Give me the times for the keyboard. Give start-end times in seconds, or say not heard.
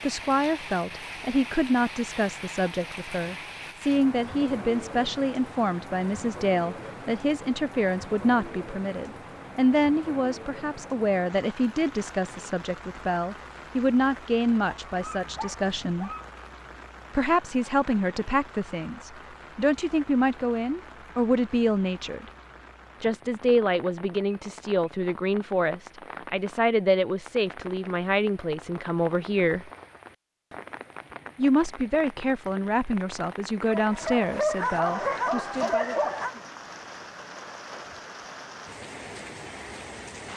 not heard.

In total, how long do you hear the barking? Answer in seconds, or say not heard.
4 s.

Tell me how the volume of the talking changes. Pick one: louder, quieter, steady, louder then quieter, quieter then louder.
steady.